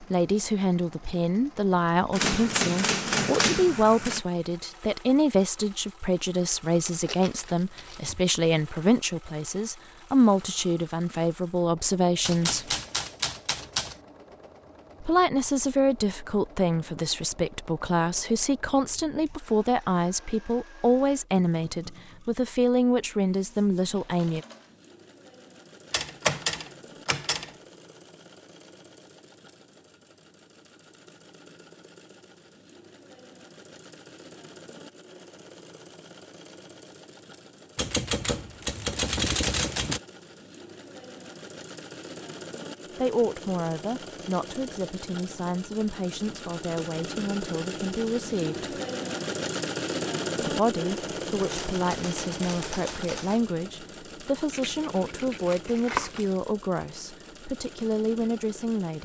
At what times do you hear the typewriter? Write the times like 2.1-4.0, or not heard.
2.1-4.2, 12.2-13.9, 25.9-27.5, 37.8-40.0, 51.4-53.4.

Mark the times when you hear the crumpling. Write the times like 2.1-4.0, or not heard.
6.8-8.2, 54.5-56.4.